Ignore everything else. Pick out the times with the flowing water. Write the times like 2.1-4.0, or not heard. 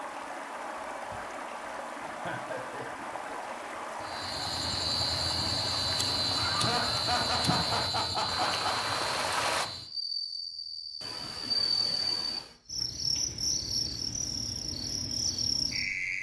0.0-9.7.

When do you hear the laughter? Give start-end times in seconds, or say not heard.
2.0-3.4, 6.3-8.8, 11.0-12.6.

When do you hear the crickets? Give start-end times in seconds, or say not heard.
4.0-16.1.